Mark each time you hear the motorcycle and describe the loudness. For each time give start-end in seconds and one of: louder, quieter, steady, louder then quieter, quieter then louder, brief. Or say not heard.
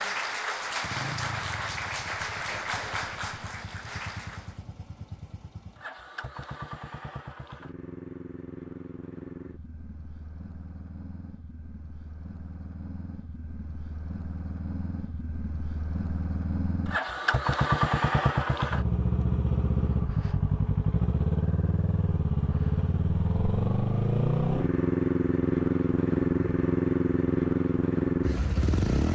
0.0-29.1 louder.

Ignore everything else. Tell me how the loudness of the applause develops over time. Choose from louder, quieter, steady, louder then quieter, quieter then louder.
quieter.